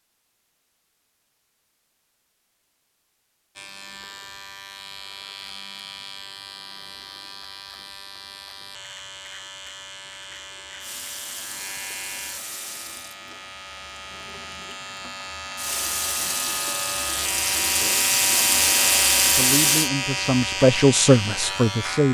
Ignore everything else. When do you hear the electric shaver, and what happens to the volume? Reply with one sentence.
You can hear the electric shaver from 3.5 to 22.0 s, getting louder.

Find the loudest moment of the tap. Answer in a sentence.
The volume of the tap peaks at 19 seconds.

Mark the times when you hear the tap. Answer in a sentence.
You can hear the tap from 10.8 to 19.9 s.